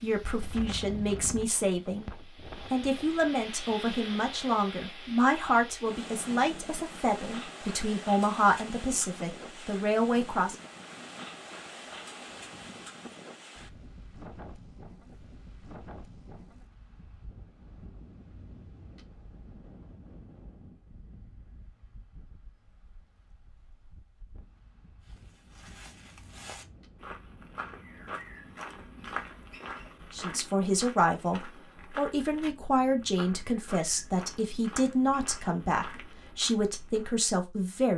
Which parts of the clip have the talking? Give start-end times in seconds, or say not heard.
0.0-10.6, 30.1-37.9.